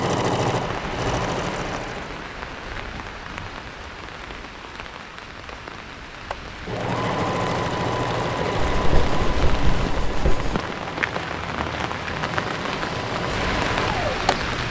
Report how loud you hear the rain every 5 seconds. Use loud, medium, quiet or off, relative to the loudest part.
medium, medium, loud.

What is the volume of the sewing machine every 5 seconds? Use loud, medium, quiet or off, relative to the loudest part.
loud, loud, medium.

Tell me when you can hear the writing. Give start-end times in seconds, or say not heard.
8.7-10.6.